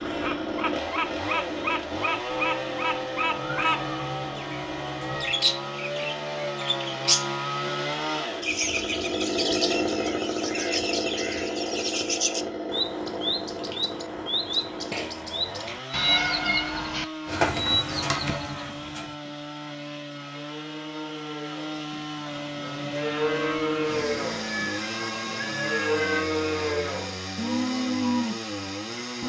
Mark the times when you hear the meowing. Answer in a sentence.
The meowing can be heard from 3.3 to 5.3 s, from 15.9 to 17.1 s and from 24.4 to 26.2 s.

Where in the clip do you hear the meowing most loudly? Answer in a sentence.
The loudest moment of the meowing is at 16 seconds.